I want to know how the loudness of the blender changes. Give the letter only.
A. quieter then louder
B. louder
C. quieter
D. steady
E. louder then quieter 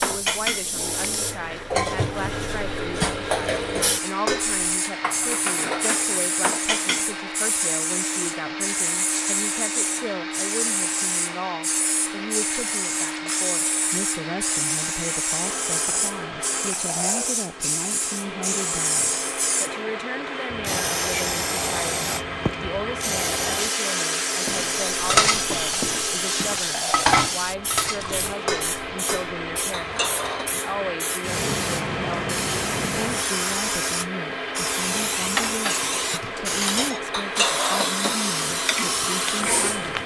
D.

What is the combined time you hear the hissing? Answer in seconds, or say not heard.
40 s.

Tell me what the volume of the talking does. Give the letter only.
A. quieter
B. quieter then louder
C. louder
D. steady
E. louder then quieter
D.